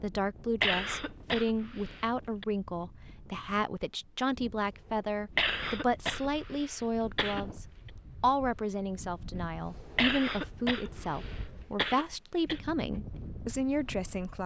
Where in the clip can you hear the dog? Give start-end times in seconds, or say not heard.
not heard.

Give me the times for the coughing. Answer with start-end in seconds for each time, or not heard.
0.6-2.5, 5.3-7.5, 9.9-12.6.